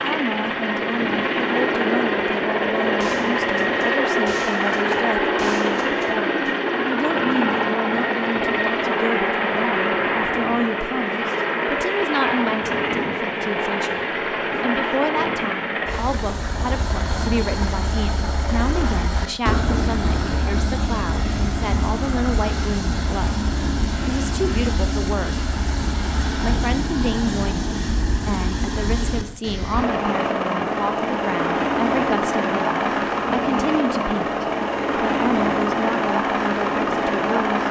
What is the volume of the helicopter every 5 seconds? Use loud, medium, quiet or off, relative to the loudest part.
loud, loud, loud, medium, medium, medium, loud, loud.